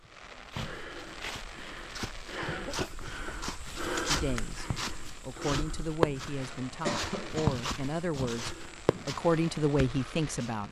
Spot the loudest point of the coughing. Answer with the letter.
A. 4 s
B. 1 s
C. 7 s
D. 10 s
C.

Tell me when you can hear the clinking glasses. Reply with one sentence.
You can't hear the clinking glasses here.